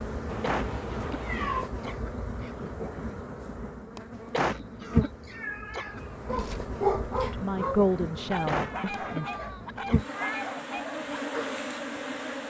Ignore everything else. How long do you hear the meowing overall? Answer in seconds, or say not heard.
4 s.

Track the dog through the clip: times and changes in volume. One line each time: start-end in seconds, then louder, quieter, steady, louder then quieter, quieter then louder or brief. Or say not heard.
6.2-11.7 quieter.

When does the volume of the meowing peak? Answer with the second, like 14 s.
1 s.